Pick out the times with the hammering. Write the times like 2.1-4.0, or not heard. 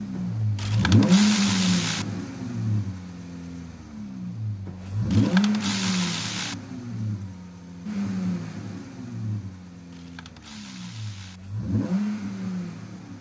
not heard.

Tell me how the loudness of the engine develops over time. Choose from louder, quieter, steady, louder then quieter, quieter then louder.
quieter.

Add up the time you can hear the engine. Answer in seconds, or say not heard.
13 s.